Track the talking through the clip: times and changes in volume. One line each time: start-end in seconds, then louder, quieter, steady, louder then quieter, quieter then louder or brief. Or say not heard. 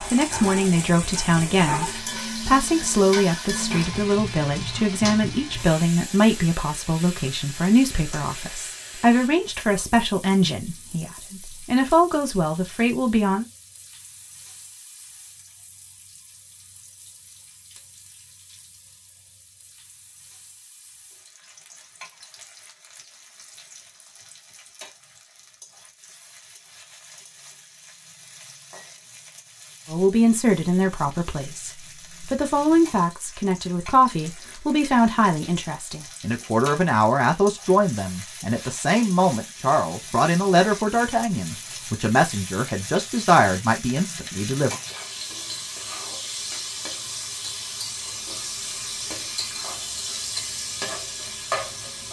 0.1-13.4 steady
29.9-44.8 steady.